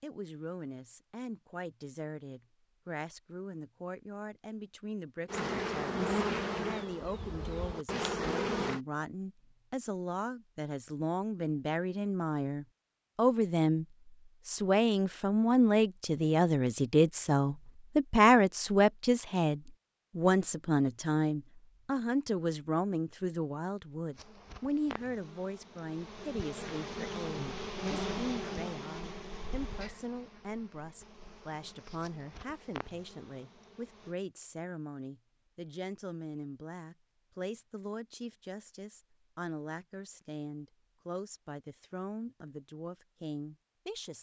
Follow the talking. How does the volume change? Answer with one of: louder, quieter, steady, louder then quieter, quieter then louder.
louder then quieter.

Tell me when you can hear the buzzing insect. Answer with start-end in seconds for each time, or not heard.
5.2-8.8, 24.1-34.1.